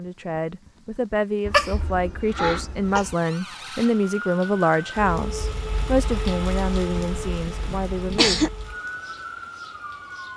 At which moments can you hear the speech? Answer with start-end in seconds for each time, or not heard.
0.0-8.4.